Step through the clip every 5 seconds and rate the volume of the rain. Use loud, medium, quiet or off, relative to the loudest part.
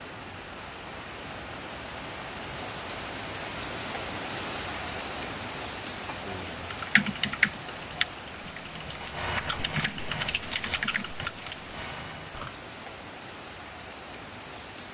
loud, loud, medium.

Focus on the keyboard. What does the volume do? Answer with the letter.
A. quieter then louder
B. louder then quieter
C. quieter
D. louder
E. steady
C.